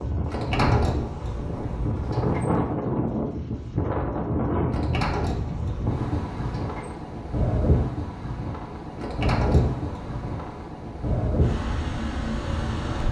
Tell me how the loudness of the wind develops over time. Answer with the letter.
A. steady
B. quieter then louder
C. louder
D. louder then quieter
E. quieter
A.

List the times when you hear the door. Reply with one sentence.
The door can be heard from 0.2 to 2.6 s, from 4.7 to 7.0 s and from 8.9 to 10.4 s.